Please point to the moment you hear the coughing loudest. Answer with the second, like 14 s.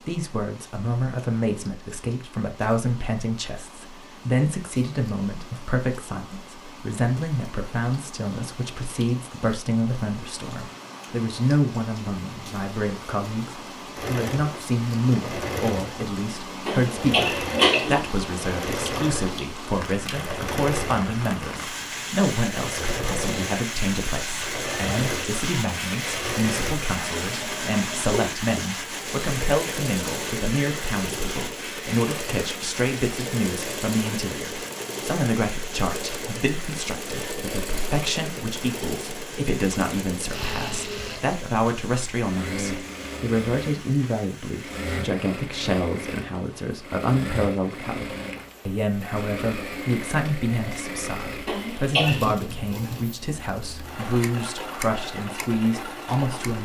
18 s.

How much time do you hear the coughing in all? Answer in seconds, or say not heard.
2 s.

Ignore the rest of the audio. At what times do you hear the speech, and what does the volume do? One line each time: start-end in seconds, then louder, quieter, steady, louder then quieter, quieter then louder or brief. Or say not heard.
0.1-56.6 steady.